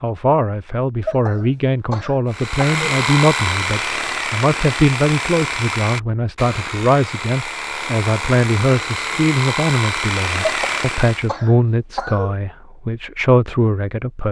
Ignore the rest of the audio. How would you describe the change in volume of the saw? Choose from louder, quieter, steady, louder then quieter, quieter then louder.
quieter then louder.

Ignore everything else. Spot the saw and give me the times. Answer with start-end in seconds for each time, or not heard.
2.3-11.3.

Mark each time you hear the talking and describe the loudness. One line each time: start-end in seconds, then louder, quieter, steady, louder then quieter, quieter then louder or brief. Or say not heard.
0.0-14.2 steady.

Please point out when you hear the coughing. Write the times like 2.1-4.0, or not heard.
1.0-3.0, 10.4-12.3.